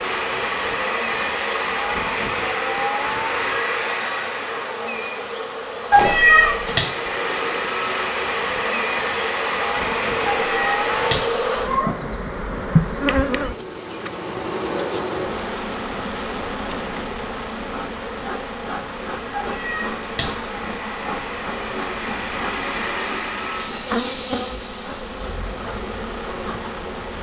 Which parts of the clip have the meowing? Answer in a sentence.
The meowing can be heard from 5.9 to 6.8 s, from 10.2 to 11.9 s and from 19.3 to 20.4 s.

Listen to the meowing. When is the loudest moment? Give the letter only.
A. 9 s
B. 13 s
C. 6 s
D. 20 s
C.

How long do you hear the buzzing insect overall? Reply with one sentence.
You can hear the buzzing insect for 27 seconds altogether.